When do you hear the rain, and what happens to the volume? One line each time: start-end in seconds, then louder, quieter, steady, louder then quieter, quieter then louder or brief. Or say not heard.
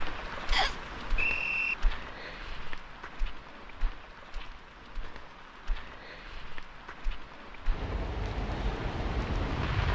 0.0-9.9 quieter then louder.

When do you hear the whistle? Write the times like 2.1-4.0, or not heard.
0.5-1.8.